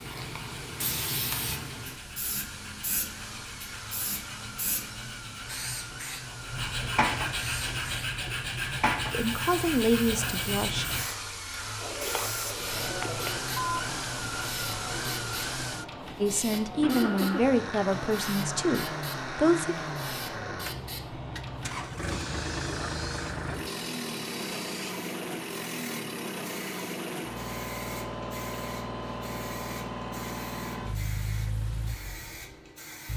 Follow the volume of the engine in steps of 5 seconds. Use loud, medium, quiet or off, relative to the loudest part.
medium, medium, loud, loud, loud, loud, loud.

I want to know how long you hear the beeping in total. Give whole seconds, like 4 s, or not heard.
2 s.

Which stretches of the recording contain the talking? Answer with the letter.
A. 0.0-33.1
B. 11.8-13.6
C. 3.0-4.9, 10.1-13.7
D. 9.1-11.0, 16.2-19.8
D.